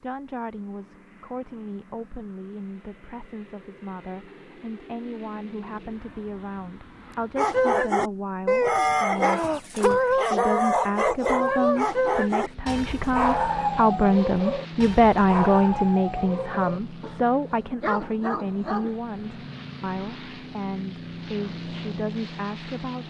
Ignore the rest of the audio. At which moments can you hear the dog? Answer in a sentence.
You can hear the dog from 7.3 to 18.9 s.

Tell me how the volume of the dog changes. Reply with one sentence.
The loudness of the dog goes down.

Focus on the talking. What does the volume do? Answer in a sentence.
The loudness of the talking goes up, then down.